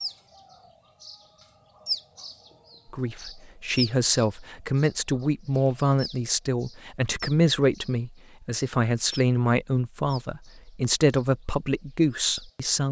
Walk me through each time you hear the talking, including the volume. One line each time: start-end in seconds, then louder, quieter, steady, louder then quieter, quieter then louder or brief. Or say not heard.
2.9-12.8 steady.